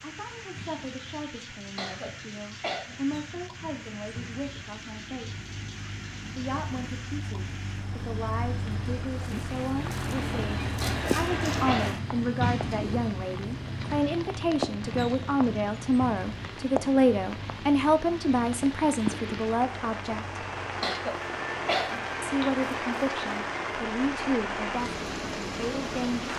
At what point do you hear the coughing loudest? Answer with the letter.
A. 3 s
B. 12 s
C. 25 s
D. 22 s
D.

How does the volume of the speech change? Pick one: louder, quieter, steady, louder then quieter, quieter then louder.
louder then quieter.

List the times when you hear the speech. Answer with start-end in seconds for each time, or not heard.
0.0-5.5, 6.3-20.4, 22.2-26.3.